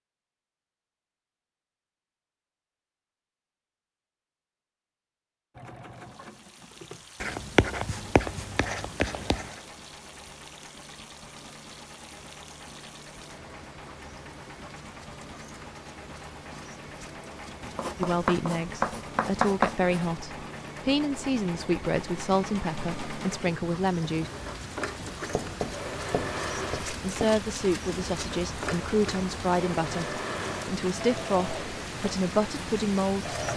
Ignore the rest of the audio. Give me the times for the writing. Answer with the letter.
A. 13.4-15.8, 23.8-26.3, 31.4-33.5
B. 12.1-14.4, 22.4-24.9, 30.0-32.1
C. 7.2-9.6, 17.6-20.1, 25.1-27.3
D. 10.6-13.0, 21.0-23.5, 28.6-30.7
C.